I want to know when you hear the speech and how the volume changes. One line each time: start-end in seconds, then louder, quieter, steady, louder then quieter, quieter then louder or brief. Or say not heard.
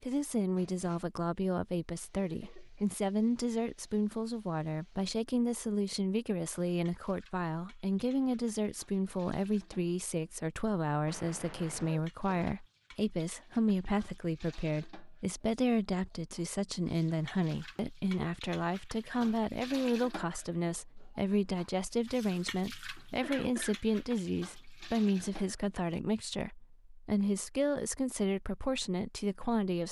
0.0-29.8 steady.